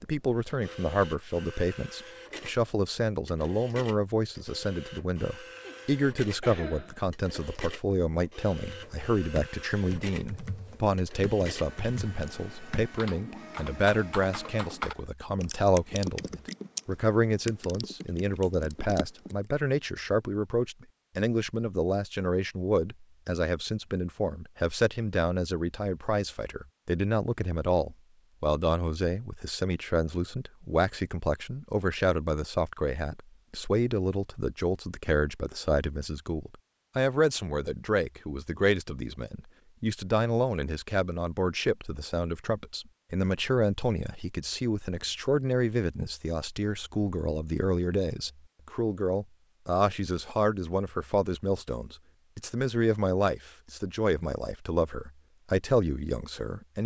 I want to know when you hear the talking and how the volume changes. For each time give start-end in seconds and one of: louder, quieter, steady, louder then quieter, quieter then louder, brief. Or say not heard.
0.0-56.8 steady.